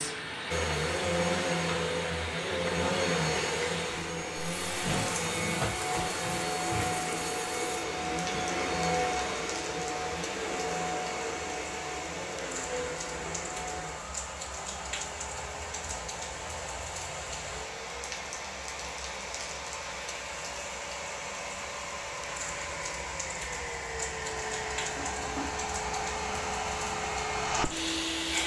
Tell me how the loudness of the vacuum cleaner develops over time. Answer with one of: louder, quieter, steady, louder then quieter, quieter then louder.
quieter then louder.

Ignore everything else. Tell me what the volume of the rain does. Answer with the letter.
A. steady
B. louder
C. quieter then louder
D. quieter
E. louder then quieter
A.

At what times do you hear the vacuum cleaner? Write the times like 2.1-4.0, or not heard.
0.0-28.4.